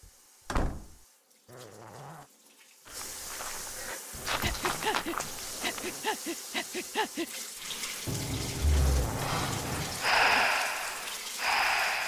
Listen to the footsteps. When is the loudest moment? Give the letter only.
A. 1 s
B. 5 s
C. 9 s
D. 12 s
B.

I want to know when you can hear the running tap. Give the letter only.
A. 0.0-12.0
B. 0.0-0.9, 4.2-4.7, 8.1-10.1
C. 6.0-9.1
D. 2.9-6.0
A.